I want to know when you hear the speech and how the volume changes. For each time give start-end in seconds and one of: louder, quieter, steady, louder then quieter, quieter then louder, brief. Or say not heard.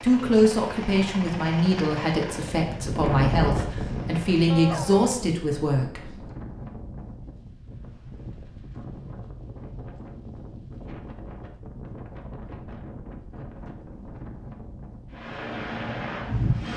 0.0-6.1 steady.